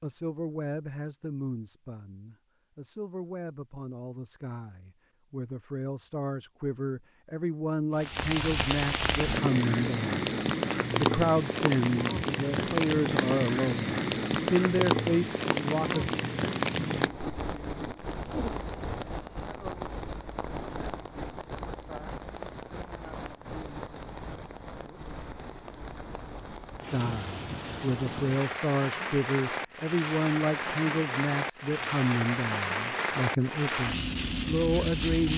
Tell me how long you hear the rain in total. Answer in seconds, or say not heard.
27 s.